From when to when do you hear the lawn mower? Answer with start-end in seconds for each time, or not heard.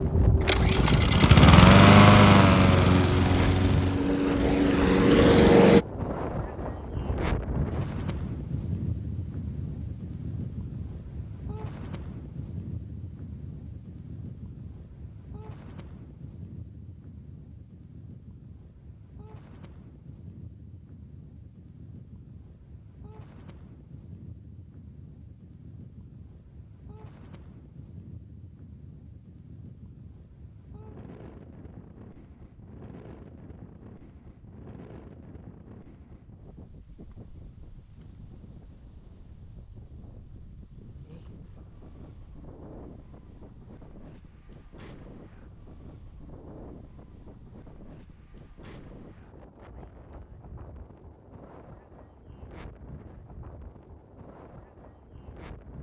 0.0-5.8.